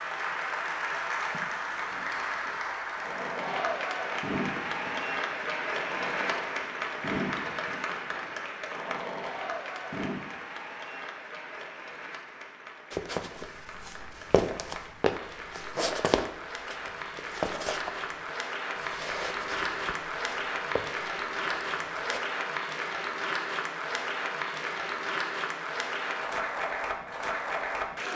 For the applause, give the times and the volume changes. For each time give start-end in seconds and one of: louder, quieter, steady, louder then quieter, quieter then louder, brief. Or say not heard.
0.0-28.1 quieter then louder.